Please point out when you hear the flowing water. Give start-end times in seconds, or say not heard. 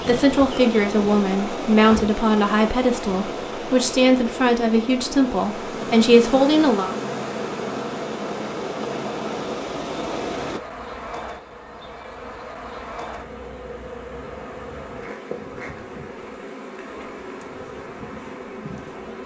0.0-10.6.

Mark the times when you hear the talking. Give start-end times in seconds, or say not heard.
0.1-7.0.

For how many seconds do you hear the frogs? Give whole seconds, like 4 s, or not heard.
not heard.